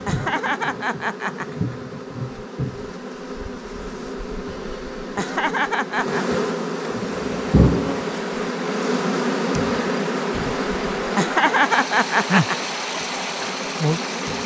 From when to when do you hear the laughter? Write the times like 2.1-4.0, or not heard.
0.1-1.8, 5.2-6.2, 11.2-12.7.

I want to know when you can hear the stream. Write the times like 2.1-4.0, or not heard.
7.0-14.4.